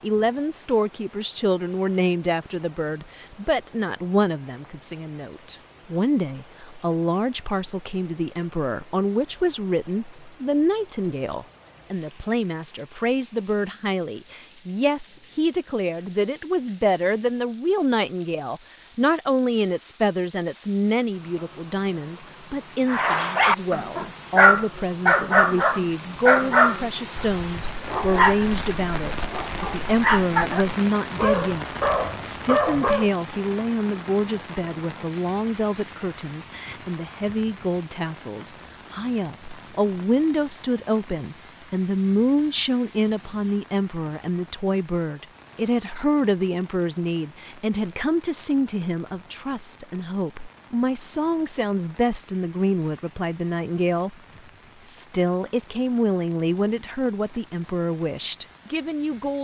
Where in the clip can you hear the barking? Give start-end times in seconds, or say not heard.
22.9-33.1.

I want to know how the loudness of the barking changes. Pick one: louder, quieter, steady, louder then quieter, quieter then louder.
quieter.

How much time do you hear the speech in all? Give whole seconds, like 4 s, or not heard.
59 s.